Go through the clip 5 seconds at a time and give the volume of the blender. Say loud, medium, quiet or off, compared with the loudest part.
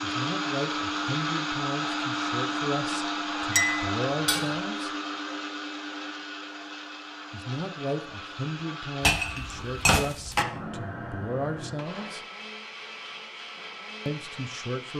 loud, medium, medium.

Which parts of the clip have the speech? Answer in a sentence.
The speech can be heard from 0.0 to 4.9 s, from 7.3 to 12.2 s and from 14.1 to 14.9 s.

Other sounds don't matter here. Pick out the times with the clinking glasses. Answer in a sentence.
The clinking glasses can be heard from 3.5 to 4.5 s and from 9.0 to 10.4 s.